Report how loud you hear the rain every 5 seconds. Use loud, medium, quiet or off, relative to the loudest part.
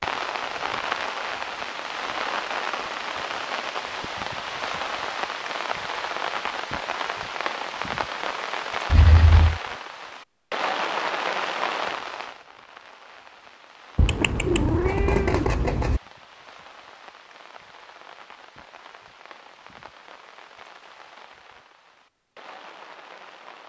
loud, loud, loud, quiet, quiet.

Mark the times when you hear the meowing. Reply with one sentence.
The meowing can be heard from 8.9 to 9.6 s and from 13.9 to 16.0 s.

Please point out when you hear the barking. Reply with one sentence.
The barking can't be heard in this clip.